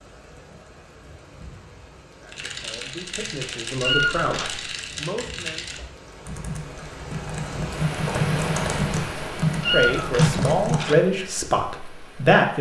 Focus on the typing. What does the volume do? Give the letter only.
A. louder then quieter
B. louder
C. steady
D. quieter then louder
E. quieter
B.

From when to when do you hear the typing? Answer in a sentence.
You can hear the typing from 2.2 to 10.8 s.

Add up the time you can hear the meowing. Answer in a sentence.
You can hear the meowing for 2 seconds altogether.